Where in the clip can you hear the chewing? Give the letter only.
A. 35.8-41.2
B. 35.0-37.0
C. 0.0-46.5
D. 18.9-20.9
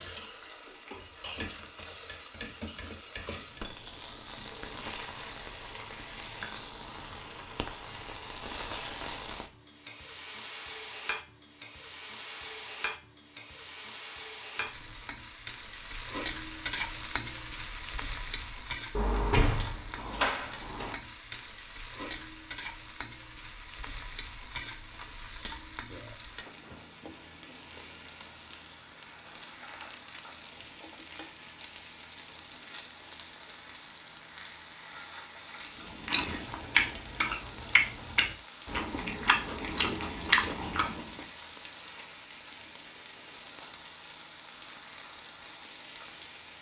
A.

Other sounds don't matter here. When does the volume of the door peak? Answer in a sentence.
The volume of the door peaks at 19 seconds.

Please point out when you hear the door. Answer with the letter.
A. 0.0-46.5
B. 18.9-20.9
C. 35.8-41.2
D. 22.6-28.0
B.